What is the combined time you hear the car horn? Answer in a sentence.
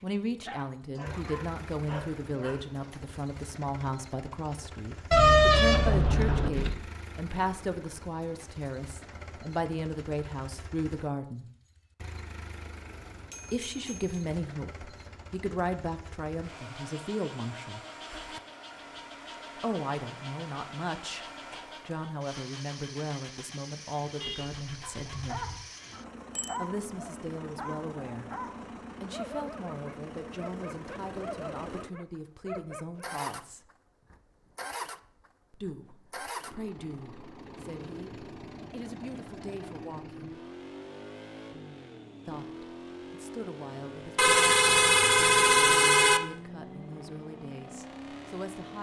You can hear the car horn for 5 seconds altogether.